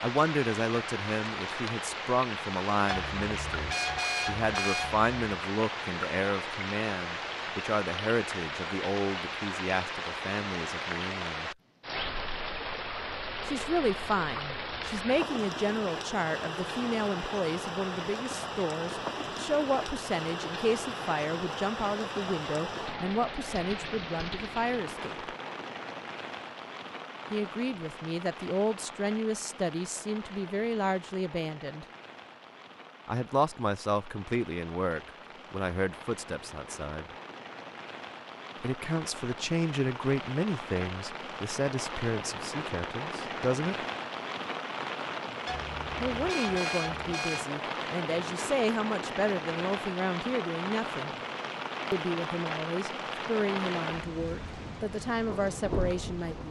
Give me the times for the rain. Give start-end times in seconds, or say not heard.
0.0-56.4.